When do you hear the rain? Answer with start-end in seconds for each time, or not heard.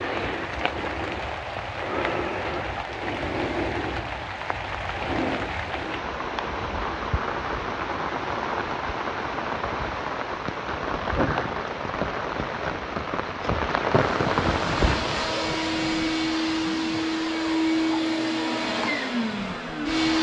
0.0-15.3.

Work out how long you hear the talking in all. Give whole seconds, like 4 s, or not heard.
not heard.